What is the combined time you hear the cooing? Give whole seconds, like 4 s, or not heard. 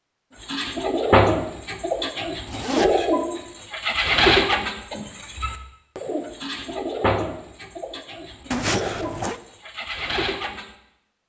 10 s.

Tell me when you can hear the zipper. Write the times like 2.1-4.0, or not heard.
2.5-3.0, 8.5-9.4.